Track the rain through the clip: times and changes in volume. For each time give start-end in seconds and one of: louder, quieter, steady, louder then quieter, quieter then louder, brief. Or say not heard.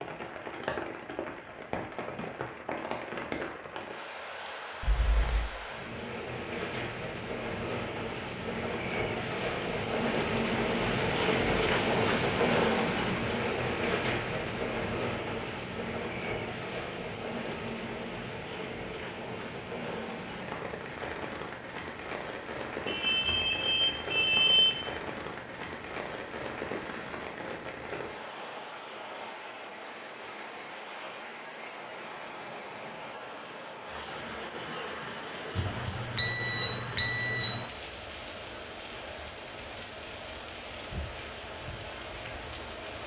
0.0-43.0 louder then quieter.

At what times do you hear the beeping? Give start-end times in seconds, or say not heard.
4.8-5.5, 22.9-24.9, 35.5-37.6.